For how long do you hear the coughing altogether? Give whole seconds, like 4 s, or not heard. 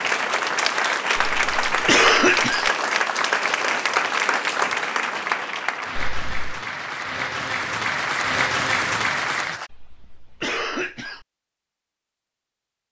4 s.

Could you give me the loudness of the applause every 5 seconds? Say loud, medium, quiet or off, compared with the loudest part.
loud, loud, off.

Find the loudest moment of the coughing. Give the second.
2 s.